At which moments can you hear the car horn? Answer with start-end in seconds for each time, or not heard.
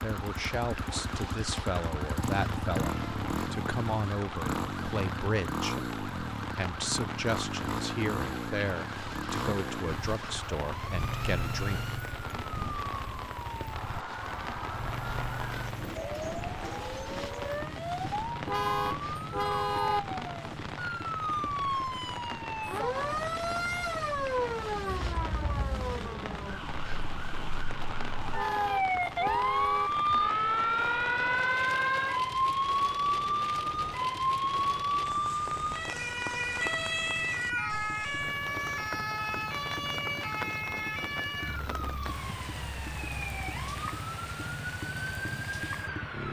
18.4-20.0, 28.3-29.9.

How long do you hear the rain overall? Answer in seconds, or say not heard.
46 s.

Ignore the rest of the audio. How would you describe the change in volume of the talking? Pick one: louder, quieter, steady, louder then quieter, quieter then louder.
steady.